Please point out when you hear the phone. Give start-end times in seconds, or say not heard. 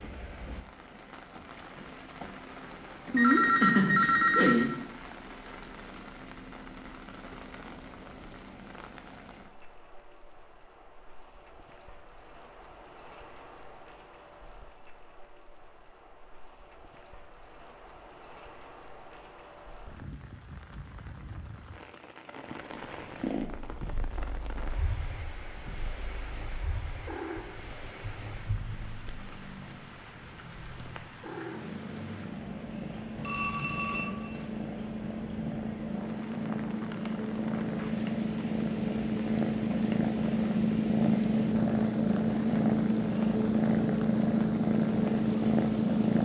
3.1-4.8, 33.2-34.5.